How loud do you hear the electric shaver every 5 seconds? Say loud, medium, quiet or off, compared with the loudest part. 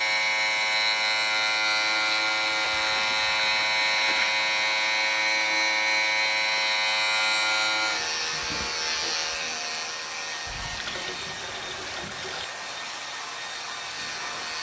loud, loud, quiet.